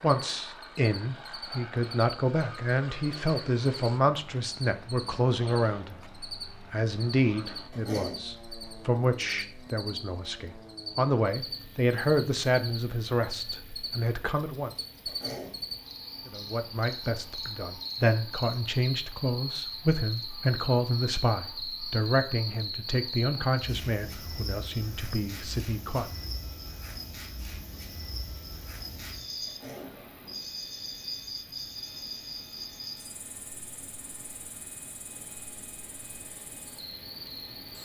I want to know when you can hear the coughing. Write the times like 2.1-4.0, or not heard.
7.7-8.2, 15.1-15.6, 29.4-29.9.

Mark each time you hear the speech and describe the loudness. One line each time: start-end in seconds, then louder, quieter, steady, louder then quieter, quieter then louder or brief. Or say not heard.
0.0-14.7 steady
16.2-26.3 quieter.